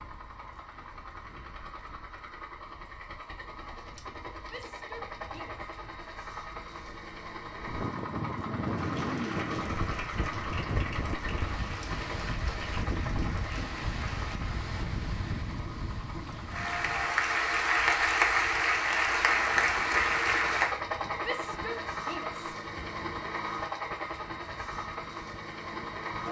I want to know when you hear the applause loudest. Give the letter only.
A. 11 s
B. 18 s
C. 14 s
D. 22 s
B.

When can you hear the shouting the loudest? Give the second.
22 s.